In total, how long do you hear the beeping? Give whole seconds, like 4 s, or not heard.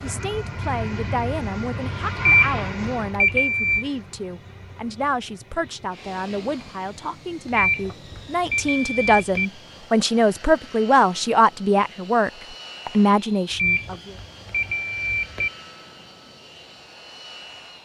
6 s.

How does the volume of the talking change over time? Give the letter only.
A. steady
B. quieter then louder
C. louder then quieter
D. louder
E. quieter
D.